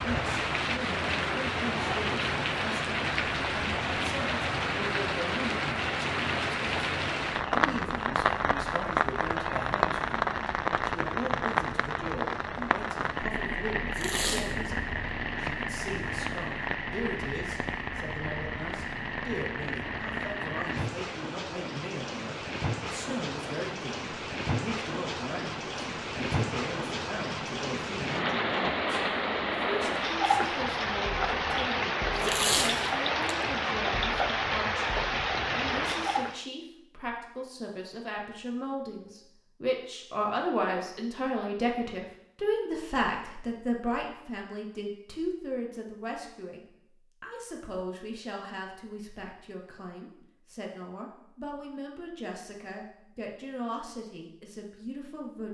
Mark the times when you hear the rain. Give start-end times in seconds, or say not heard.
0.0-36.5.